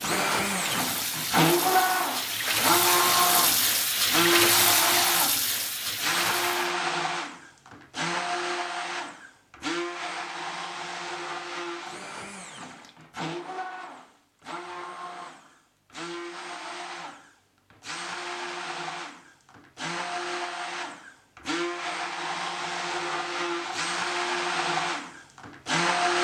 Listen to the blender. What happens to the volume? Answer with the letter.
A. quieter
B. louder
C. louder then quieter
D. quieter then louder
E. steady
D.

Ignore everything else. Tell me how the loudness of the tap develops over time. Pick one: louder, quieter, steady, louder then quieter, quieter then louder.
louder then quieter.